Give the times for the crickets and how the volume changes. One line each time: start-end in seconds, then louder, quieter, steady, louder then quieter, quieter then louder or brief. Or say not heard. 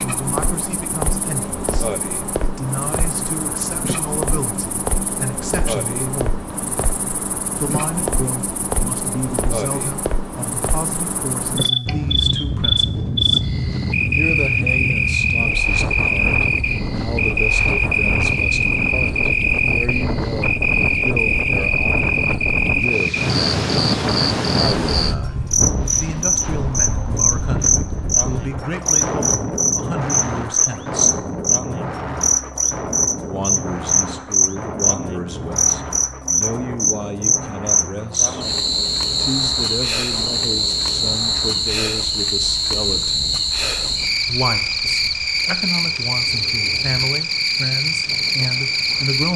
0.0-49.3 louder.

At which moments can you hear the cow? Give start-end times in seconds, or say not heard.
not heard.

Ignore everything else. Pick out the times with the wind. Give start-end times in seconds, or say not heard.
11.8-49.2.